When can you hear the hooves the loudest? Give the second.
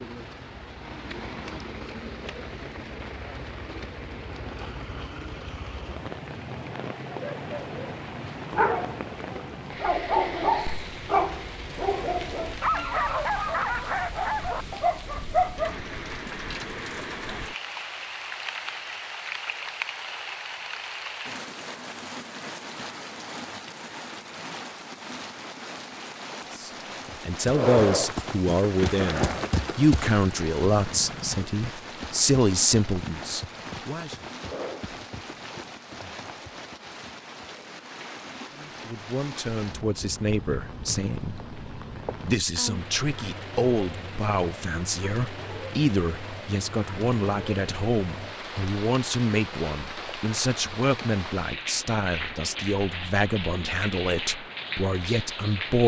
28 s.